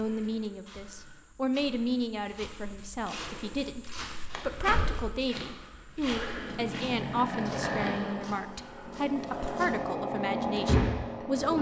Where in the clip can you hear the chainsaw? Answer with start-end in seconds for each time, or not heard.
6.2-11.5.